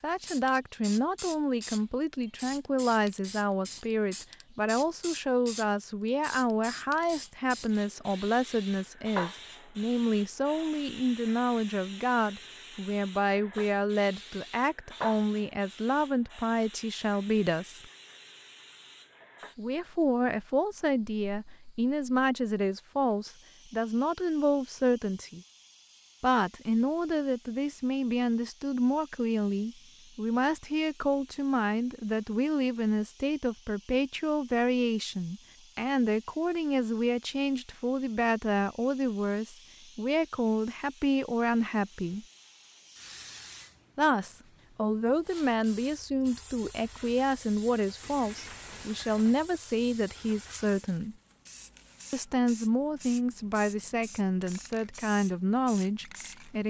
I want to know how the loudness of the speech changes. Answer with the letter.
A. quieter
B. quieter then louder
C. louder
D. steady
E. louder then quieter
D.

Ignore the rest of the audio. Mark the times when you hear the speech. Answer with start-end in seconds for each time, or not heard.
0.0-17.9, 19.6-25.4, 26.2-42.2, 44.0-51.1, 52.1-56.6.